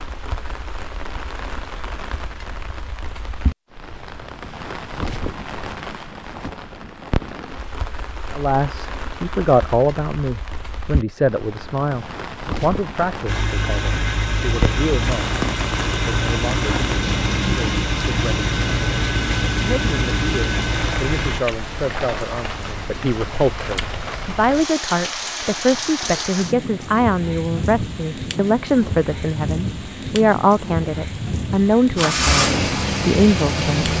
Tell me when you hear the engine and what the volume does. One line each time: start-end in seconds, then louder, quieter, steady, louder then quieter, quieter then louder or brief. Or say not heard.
13.2-21.4 steady
31.9-33.9 brief.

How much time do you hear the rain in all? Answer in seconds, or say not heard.
34 s.